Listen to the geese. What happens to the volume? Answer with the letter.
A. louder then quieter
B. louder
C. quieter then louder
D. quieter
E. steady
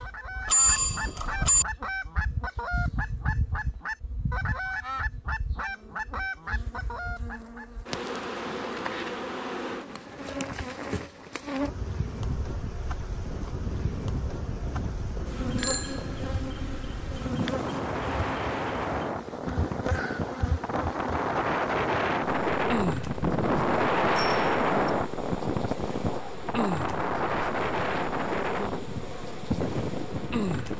E.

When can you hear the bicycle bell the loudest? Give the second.
1 s.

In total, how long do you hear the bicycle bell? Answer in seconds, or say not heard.
3 s.